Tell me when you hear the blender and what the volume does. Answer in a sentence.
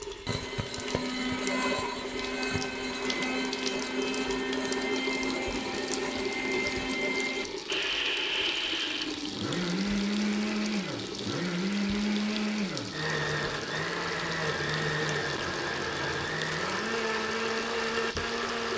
You can hear the blender from 0.0 to 18.7 s, at a steady volume.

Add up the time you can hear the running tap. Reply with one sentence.
The running tap can be heard for 19 seconds in total.